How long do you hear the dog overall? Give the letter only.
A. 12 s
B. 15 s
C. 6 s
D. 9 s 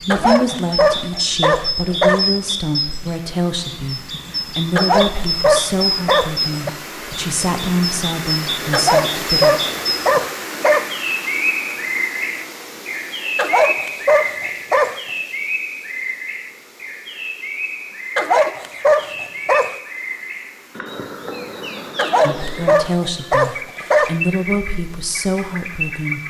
A.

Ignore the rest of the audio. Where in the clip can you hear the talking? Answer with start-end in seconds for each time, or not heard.
0.0-9.6, 22.2-26.2.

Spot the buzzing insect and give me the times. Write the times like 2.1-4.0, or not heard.
not heard.